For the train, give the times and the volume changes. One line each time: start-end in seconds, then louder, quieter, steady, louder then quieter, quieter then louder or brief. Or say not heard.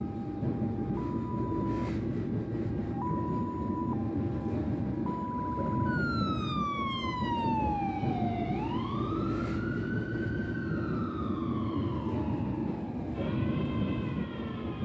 0.0-14.8 steady.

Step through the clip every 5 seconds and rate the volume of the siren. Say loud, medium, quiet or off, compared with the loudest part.
medium, loud, medium.